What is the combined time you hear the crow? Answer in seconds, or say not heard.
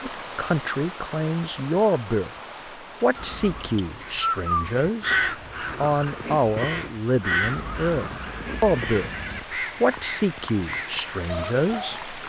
8 s.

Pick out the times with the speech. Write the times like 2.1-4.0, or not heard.
0.0-2.3, 3.0-5.2, 5.8-9.1, 9.8-12.1.